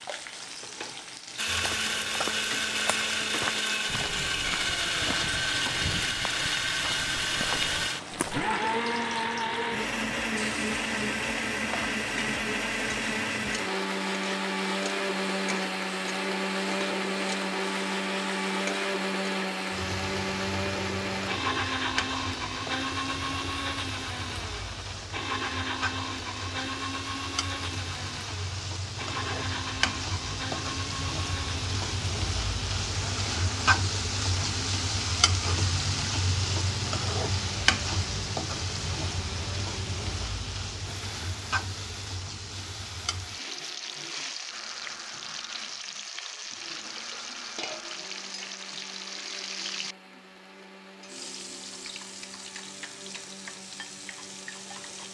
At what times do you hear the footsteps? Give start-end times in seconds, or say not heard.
1.4-8.5.